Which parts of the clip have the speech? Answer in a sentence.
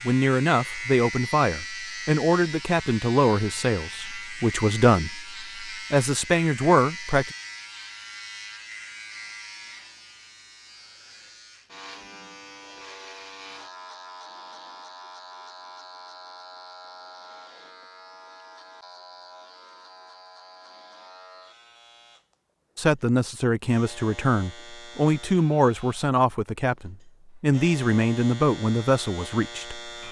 The speech can be heard from 0.1 to 7.3 s and from 22.8 to 29.9 s.